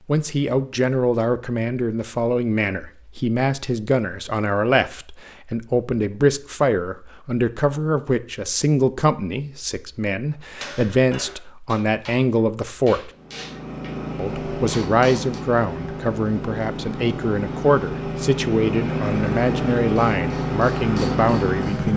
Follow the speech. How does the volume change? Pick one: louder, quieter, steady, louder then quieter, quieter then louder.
steady.